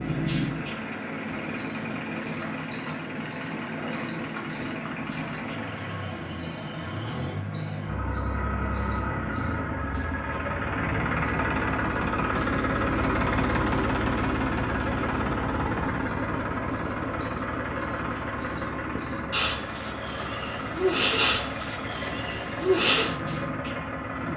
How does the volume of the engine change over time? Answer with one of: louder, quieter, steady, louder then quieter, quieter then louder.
louder then quieter.